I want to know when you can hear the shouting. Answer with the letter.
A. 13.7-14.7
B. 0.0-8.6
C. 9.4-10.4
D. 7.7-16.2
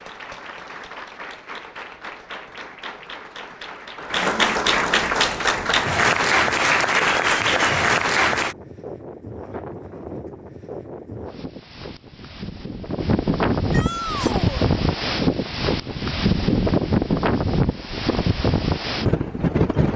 A.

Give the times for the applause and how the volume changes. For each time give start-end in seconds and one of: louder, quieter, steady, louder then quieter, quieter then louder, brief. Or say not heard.
0.0-8.6 louder.